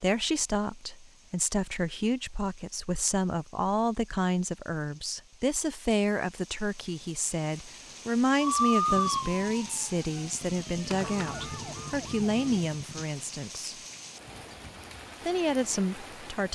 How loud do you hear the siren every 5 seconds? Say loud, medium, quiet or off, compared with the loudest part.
off, loud, quiet, off.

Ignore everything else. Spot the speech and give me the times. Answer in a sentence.
The speech can be heard from 0.0 to 13.8 s and from 15.2 to 16.4 s.